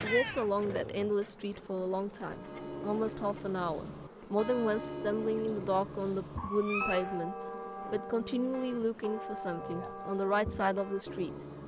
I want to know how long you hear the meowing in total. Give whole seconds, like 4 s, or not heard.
2 s.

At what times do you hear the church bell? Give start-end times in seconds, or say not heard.
2.2-11.6.